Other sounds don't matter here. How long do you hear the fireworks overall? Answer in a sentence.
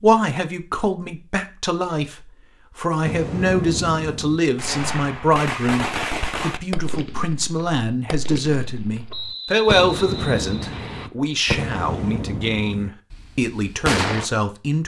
You can hear the fireworks for 11 seconds altogether.